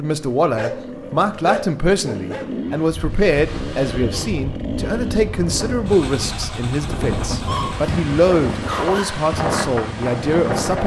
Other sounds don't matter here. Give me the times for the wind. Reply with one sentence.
You can hear the wind from 2.9 to 10.8 s.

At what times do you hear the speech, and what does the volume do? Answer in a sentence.
The speech can be heard from 0.0 to 10.8 s, at a steady volume.